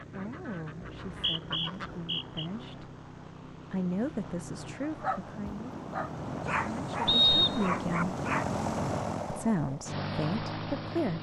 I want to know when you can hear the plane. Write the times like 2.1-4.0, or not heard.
0.0-11.1.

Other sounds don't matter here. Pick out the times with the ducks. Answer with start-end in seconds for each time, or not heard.
0.0-2.0.